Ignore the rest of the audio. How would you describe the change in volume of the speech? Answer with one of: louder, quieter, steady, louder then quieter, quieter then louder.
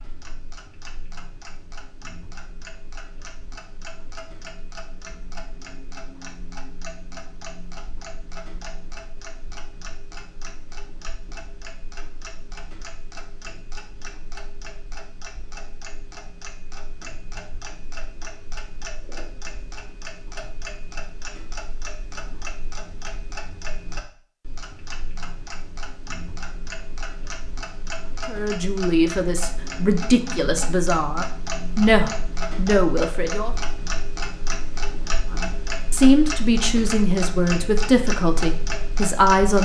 steady.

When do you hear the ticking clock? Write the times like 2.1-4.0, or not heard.
0.0-39.6.